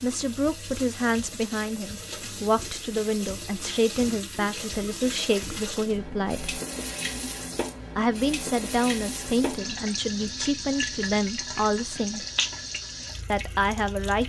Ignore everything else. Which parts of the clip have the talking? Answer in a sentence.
The talking can be heard from 0.0 to 6.6 s, from 8.0 to 12.2 s and from 13.3 to 14.2 s.